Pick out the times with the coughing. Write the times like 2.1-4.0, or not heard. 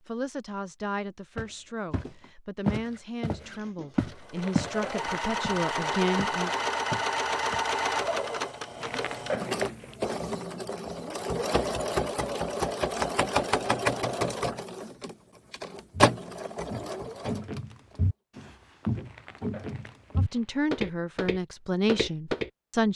not heard.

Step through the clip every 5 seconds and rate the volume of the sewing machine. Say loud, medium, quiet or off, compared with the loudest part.
medium, loud, loud, loud, off.